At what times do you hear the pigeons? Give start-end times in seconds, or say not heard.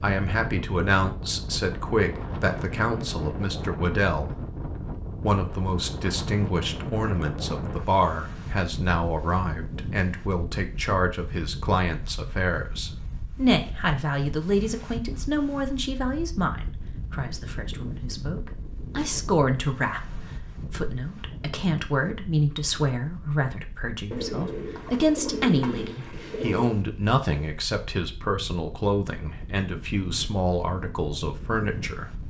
24.1-26.7.